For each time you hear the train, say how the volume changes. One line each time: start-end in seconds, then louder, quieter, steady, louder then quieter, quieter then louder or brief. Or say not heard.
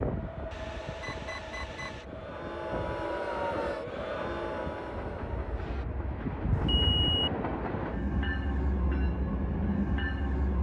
0.0-10.5 louder.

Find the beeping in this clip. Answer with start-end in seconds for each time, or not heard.
0.5-2.0, 6.5-7.3.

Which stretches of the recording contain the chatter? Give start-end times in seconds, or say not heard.
0.2-5.8.